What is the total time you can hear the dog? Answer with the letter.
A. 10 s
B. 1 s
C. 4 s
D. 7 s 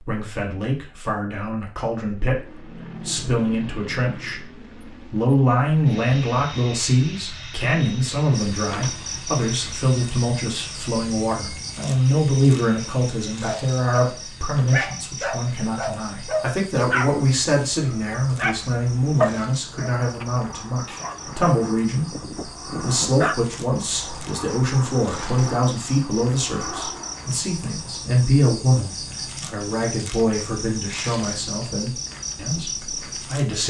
A.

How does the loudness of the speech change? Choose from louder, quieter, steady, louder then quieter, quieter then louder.
steady.